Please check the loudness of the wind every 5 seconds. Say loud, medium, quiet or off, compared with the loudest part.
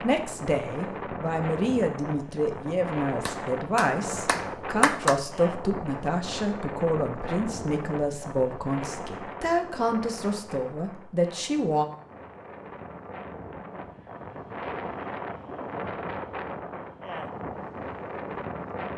loud, loud, medium, loud.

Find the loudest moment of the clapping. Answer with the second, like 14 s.
5 s.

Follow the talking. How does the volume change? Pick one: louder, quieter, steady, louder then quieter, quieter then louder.
steady.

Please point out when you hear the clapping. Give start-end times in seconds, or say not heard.
3.2-5.2.